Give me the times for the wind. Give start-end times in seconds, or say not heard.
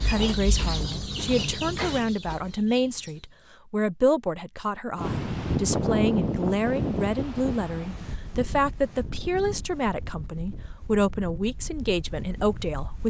5.0-13.0.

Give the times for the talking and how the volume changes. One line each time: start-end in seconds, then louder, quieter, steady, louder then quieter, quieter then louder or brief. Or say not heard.
0.0-13.0 steady.